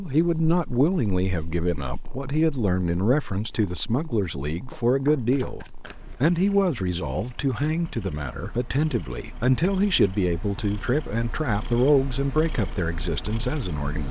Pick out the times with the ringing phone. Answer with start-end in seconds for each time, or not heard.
not heard.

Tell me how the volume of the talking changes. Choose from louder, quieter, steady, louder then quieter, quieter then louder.
steady.